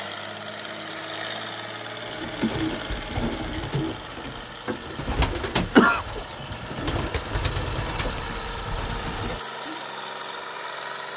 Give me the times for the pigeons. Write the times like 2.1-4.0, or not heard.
2.0-9.8.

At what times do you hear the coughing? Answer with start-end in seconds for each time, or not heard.
5.4-6.0.